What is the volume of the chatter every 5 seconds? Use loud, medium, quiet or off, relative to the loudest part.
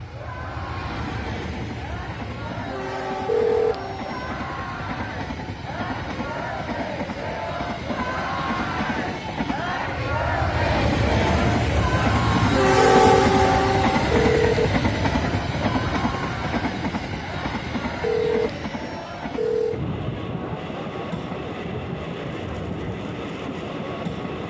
medium, loud, loud, medium, medium.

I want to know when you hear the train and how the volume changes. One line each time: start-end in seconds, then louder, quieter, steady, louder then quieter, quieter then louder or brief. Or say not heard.
0.0-24.4 louder then quieter.